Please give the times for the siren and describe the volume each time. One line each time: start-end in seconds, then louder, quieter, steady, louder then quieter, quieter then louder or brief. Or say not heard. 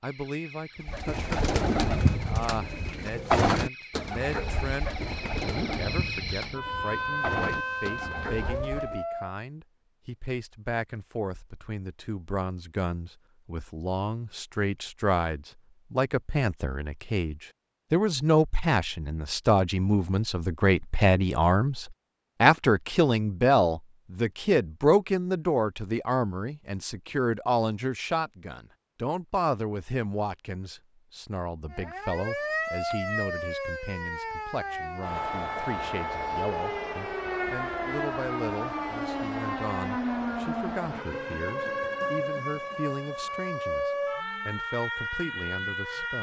0.0-9.3 louder
31.7-46.1 steady.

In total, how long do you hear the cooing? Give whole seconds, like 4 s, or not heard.
8 s.